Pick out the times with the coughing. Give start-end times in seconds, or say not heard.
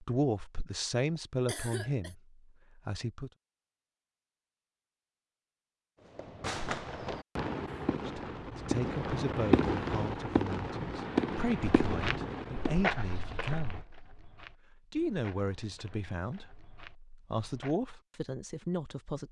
1.4-2.1.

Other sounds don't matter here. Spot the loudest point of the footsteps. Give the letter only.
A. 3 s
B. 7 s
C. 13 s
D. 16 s
C.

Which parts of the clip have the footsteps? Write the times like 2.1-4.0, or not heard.
11.8-17.8.